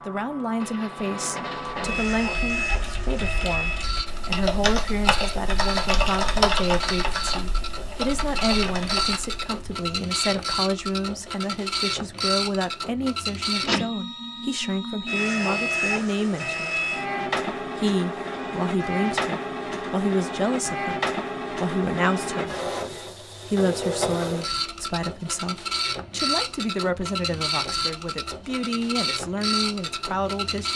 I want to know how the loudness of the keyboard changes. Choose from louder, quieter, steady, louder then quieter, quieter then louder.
louder then quieter.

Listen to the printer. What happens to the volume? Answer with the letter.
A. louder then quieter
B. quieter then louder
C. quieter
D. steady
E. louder
D.